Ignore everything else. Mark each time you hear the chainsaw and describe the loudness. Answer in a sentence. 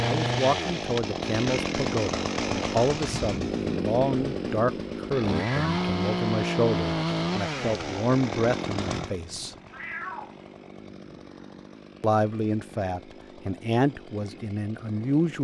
You can hear the chainsaw from 0.0 to 15.3 s, getting quieter.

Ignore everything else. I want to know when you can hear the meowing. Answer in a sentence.
You can hear the meowing from 5.3 to 5.9 s and from 9.7 to 10.3 s.